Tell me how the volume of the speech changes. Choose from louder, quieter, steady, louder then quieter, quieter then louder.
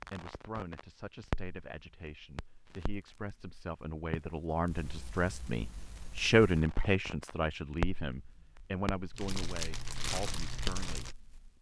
louder then quieter.